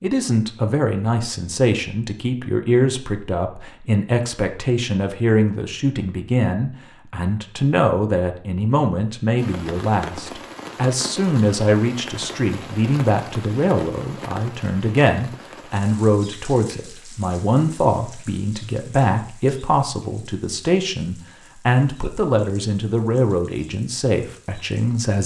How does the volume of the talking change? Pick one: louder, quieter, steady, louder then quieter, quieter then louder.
steady.